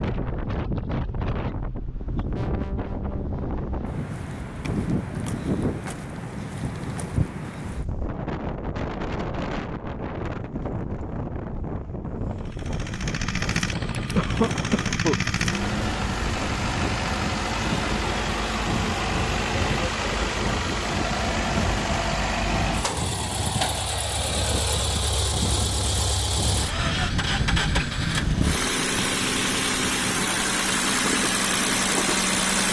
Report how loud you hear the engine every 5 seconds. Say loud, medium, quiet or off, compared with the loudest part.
off, off, medium, loud, loud, loud, loud.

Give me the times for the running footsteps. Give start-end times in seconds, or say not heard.
not heard.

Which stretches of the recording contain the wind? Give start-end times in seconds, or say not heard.
0.0-32.4.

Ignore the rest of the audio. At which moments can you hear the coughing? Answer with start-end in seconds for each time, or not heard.
14.2-15.2.